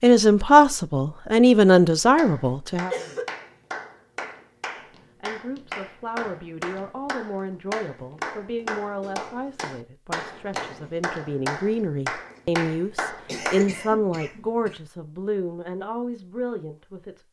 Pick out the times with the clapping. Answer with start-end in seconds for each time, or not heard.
2.1-13.8.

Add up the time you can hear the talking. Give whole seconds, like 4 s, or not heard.
15 s.